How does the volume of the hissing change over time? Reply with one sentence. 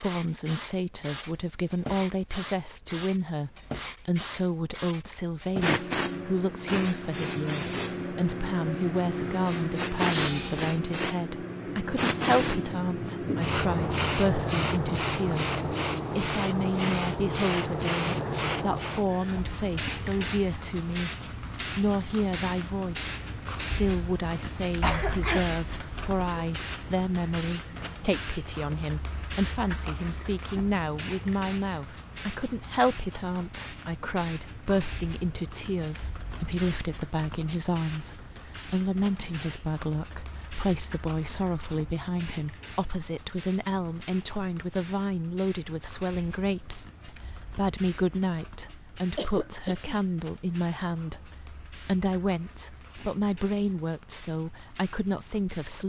The loudness of the hissing goes down.